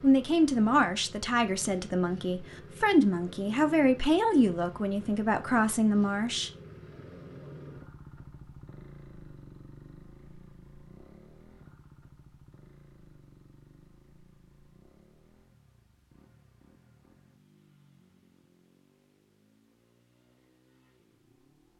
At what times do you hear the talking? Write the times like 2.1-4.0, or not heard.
0.0-6.5.